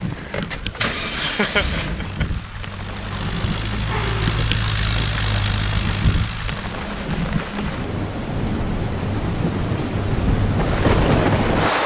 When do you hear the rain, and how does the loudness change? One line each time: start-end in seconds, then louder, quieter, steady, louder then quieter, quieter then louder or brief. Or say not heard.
0.0-11.8 louder.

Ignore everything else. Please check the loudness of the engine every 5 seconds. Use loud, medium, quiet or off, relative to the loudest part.
loud, loud, off.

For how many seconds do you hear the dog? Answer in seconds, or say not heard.
2 s.